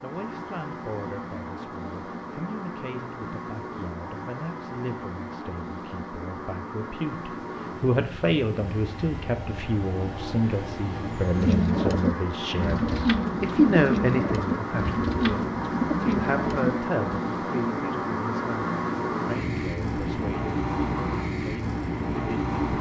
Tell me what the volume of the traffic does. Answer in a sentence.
The volume of the traffic goes up.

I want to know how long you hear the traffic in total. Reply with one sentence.
You can hear the traffic for 23 seconds altogether.